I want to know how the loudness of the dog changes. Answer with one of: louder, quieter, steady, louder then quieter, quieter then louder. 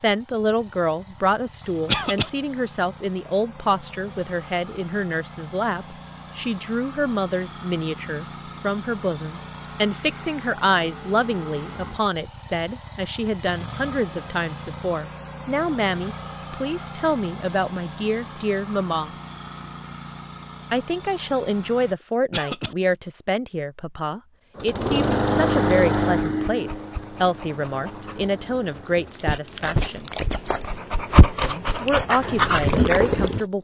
louder.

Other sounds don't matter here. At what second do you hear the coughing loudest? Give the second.
2 s.